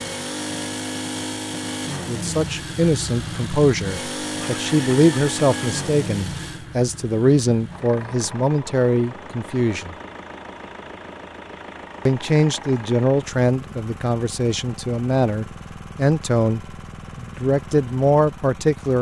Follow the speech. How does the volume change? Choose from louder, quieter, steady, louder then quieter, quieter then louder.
steady.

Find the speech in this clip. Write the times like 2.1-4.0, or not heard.
2.0-9.9, 12.1-18.9.